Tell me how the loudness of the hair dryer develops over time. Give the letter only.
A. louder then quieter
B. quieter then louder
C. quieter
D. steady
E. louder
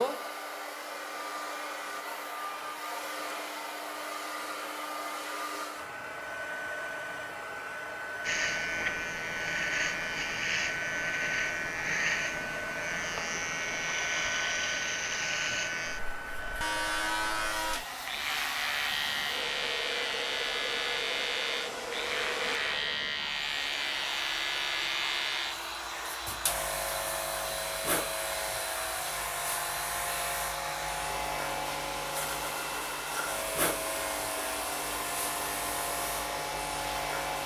D.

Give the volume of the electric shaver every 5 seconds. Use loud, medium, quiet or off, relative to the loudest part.
off, loud, loud, loud, loud, loud, loud, loud.